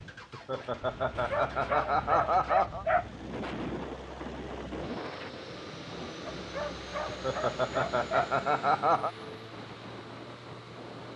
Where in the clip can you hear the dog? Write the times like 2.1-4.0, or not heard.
1.1-3.2, 6.2-8.4.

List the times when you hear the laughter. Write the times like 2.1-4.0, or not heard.
0.3-2.9, 7.0-9.1.